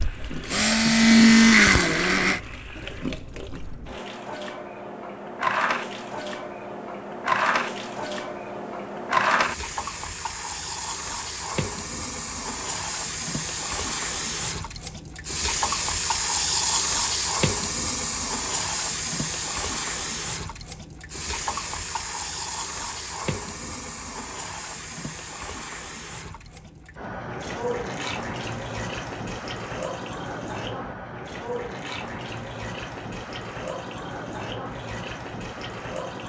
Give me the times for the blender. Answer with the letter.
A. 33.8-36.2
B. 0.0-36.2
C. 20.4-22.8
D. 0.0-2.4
D.